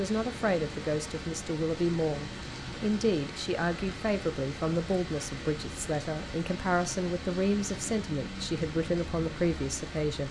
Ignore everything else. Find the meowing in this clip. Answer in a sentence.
The meowing can't be heard in this clip.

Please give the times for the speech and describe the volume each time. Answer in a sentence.
The speech can be heard from 0.0 to 10.2 s, at a steady volume.